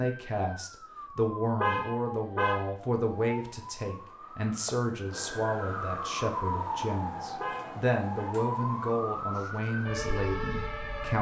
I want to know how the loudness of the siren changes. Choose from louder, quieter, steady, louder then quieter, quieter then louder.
louder.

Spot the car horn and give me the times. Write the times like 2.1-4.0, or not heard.
1.6-2.7, 7.4-8.3.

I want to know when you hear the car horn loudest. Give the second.
2 s.